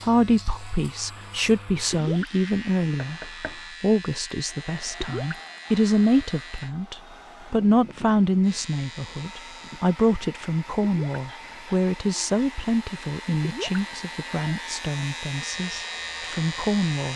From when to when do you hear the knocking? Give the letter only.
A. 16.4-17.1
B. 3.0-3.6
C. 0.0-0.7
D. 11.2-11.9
B.